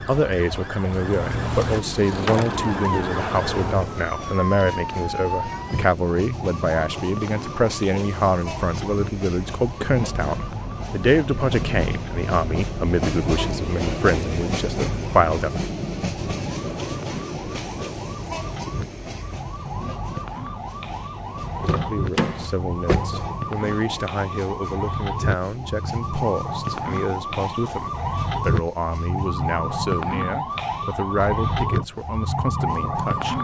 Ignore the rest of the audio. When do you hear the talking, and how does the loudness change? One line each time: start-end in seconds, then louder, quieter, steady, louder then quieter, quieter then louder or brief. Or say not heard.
0.0-15.5 steady
21.9-33.3 steady.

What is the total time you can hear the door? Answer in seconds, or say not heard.
3 s.